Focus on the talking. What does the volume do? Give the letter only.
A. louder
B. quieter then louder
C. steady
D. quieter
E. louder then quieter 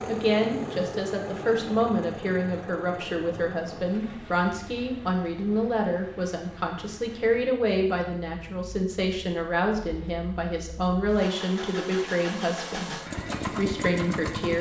C.